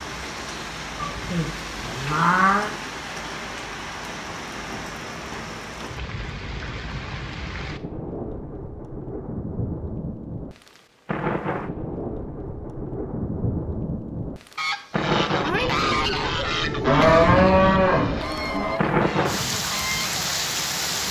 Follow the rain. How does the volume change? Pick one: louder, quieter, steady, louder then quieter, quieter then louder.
louder.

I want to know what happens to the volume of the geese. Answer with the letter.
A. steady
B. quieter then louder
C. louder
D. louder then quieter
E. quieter
E.